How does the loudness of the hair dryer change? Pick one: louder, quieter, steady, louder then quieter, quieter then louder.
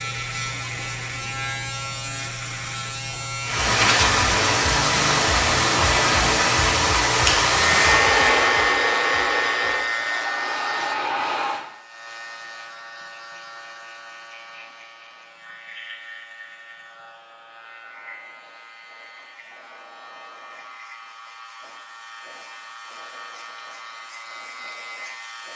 quieter.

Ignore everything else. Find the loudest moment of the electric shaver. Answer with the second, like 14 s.
8 s.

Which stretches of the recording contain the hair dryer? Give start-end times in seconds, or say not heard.
3.4-11.7.